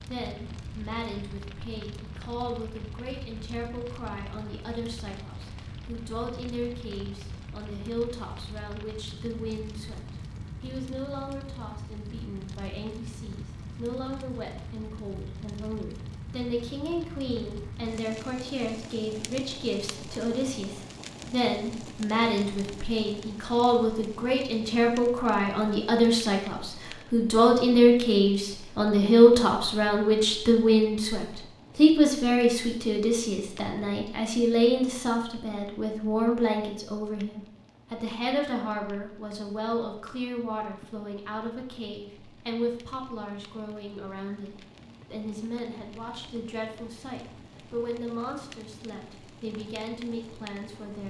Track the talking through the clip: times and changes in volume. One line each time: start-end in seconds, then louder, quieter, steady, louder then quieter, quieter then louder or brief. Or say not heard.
0.1-51.0 louder then quieter.